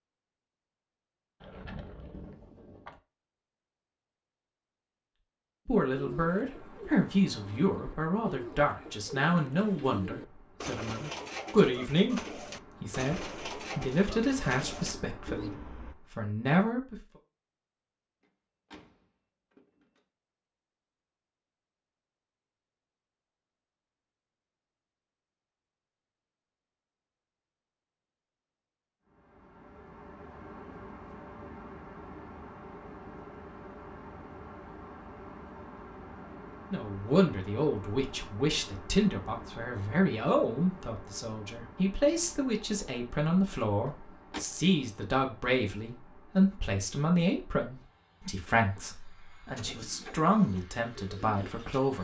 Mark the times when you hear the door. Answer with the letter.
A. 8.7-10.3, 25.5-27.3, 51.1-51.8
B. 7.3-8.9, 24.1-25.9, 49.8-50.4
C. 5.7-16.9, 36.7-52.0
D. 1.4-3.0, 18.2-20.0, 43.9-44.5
D.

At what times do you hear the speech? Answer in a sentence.
The speech can be heard from 5.7 to 16.9 s and from 36.7 to 52.0 s.